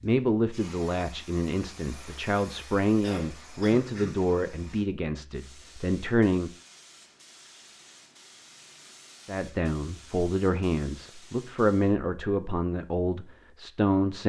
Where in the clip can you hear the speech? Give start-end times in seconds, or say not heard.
0.0-6.5, 9.2-14.2.